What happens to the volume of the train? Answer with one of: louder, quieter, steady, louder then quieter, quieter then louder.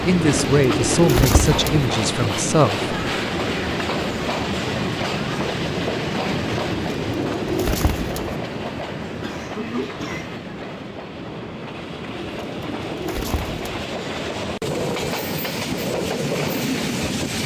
quieter then louder.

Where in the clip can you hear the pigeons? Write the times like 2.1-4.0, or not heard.
0.1-1.9, 6.7-8.4, 12.1-13.6.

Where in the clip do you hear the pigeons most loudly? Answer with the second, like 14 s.
1 s.